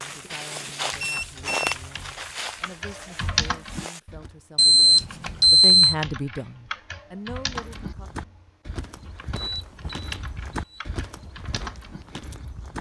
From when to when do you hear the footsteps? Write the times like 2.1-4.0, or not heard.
0.0-4.3, 7.4-12.7.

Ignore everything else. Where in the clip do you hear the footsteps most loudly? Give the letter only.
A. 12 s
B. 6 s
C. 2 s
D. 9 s
C.